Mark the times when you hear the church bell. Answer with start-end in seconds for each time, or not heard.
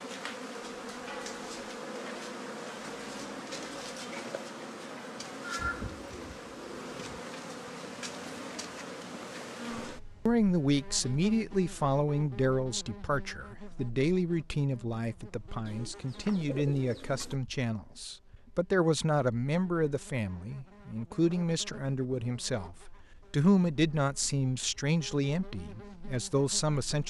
0.6-6.1.